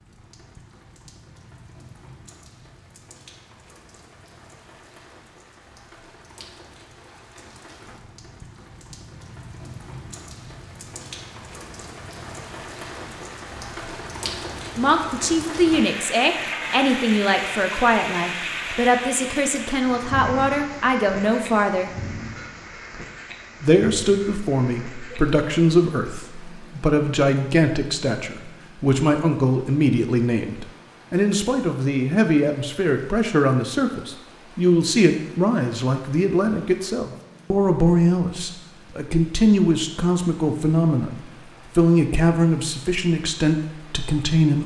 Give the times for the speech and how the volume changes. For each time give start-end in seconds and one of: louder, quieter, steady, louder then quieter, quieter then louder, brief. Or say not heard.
14.8-21.9 steady
23.6-44.6 steady.